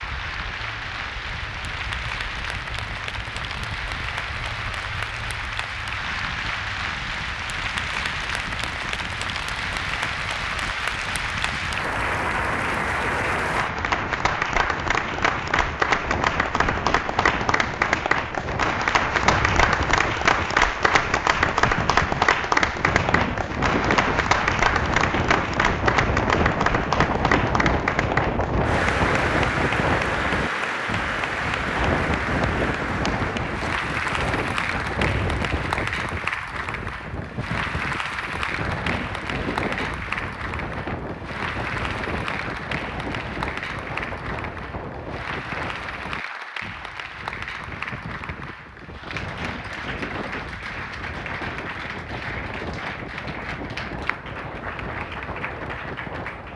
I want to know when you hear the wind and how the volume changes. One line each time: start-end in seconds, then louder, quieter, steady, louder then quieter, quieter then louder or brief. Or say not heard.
0.0-56.5 louder then quieter.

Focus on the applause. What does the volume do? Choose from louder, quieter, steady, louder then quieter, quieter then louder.
louder then quieter.